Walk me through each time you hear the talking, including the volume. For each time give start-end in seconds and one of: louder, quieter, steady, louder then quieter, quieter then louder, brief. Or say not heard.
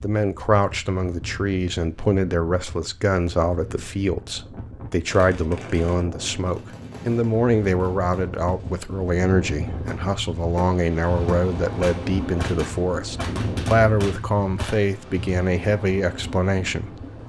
0.0-17.1 steady.